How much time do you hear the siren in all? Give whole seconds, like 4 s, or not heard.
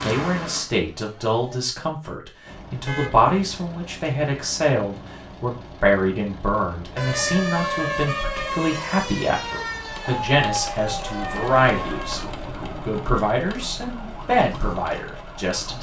10 s.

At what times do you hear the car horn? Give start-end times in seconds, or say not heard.
2.9-3.3, 7.0-8.8, 11.1-12.3.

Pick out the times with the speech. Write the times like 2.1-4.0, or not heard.
0.0-12.2, 12.8-15.7.